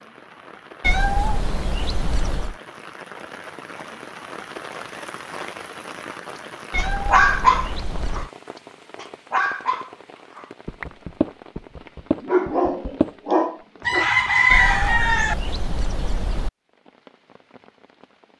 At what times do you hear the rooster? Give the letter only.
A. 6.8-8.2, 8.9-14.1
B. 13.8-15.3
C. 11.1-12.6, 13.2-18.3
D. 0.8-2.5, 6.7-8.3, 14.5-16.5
B.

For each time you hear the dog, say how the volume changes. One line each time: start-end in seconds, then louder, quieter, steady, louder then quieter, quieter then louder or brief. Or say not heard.
6.8-8.2 brief
8.9-14.1 quieter then louder.